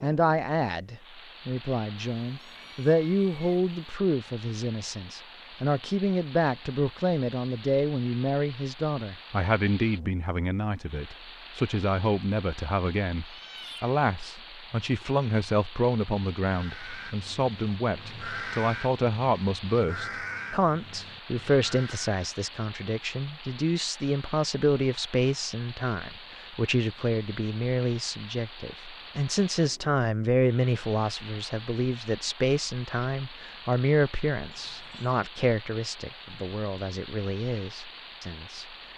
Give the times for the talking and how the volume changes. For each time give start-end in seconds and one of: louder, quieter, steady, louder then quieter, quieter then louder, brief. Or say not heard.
0.0-38.6 steady.